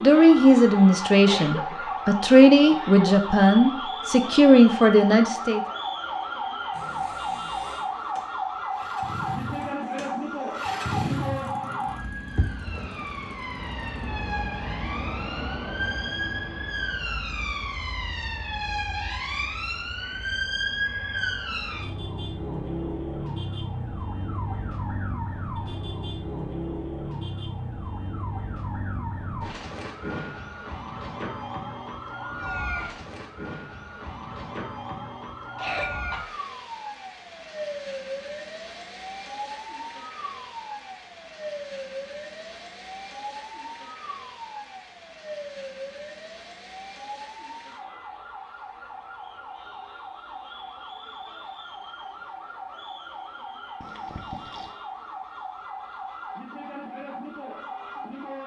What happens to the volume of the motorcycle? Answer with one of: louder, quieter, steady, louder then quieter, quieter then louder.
louder then quieter.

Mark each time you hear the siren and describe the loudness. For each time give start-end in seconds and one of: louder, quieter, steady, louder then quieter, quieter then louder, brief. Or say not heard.
0.0-58.4 quieter.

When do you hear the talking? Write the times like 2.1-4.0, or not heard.
0.0-5.6.